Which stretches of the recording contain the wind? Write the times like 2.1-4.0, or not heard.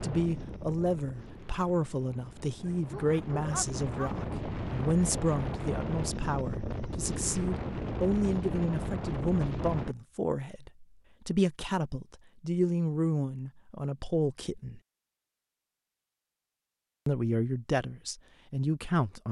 0.0-9.9.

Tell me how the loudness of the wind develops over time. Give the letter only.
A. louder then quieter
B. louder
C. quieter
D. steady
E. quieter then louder
B.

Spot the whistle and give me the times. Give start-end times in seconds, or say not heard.
not heard.